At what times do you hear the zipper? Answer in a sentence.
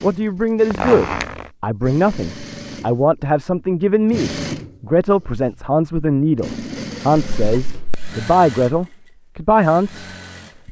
The zipper can be heard from 0.7 to 1.4 s and from 7.3 to 8.2 s.